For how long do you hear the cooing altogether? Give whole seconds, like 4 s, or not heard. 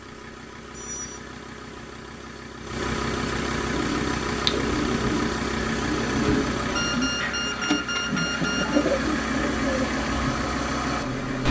6 s.